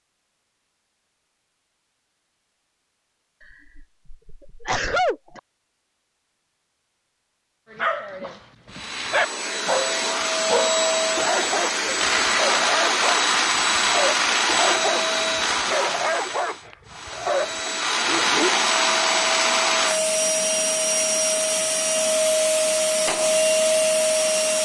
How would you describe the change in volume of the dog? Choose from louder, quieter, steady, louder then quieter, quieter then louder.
steady.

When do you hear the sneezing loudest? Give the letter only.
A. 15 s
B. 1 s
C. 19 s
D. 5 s
D.